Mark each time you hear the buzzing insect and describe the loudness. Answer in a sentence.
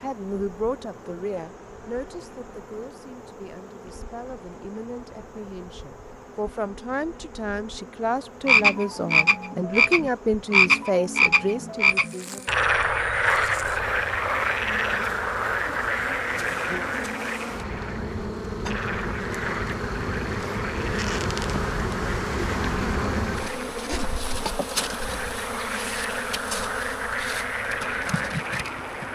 The buzzing insect can be heard from 0.0 to 29.1 s, getting louder.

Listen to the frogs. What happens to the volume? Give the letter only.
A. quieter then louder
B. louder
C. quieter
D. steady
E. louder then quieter
A.